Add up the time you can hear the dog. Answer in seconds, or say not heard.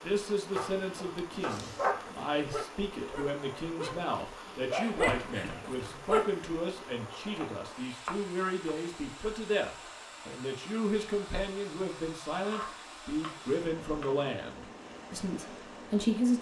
5 s.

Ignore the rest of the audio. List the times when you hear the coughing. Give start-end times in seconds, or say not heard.
5.0-5.8.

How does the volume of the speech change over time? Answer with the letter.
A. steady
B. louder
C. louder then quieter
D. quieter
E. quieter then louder
A.